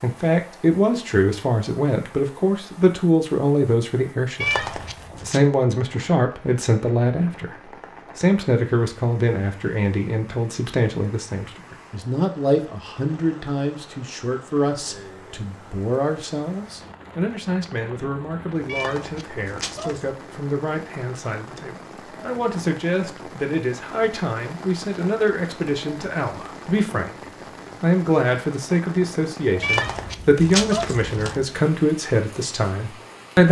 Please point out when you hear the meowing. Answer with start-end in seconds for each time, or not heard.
4.4-5.4, 18.6-20.1, 29.6-31.4.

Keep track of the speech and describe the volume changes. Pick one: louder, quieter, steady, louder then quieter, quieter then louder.
quieter then louder.